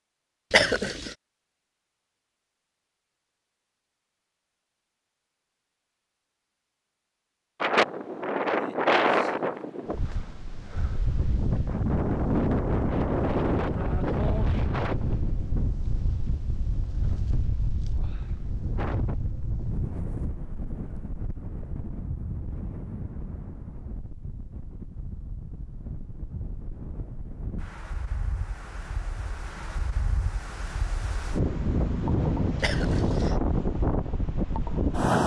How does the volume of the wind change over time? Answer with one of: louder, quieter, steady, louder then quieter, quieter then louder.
quieter then louder.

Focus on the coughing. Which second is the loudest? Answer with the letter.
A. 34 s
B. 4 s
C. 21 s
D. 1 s
D.